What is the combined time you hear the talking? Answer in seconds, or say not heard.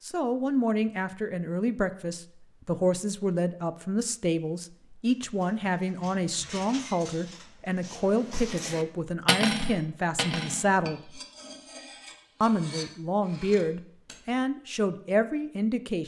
15 s.